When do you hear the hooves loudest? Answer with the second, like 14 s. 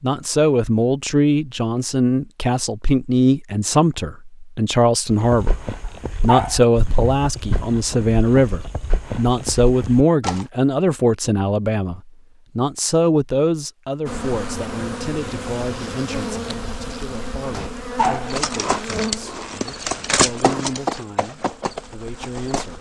20 s.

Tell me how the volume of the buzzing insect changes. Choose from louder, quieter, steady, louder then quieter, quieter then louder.
quieter.